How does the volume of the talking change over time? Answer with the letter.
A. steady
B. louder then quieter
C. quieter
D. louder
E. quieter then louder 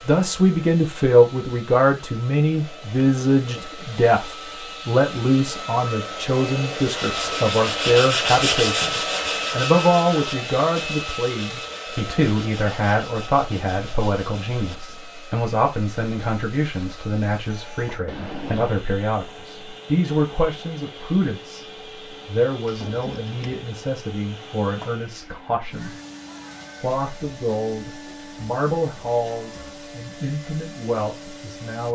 C.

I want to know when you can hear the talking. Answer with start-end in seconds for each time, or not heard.
0.1-25.9, 26.8-31.9.